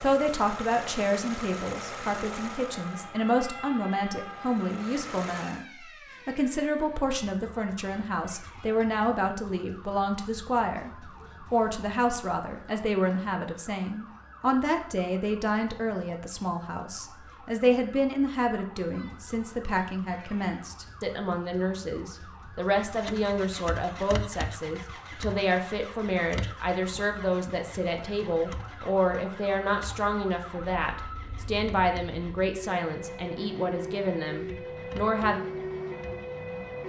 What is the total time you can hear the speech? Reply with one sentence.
You can hear the speech for 34 seconds altogether.